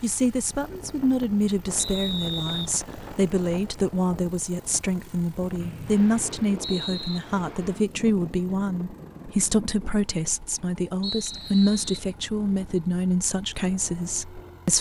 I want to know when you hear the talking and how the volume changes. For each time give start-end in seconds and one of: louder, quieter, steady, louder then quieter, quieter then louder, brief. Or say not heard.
0.0-14.7 steady.